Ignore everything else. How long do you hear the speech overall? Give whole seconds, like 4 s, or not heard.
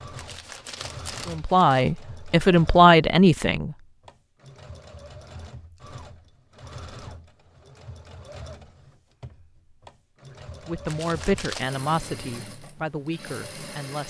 6 s.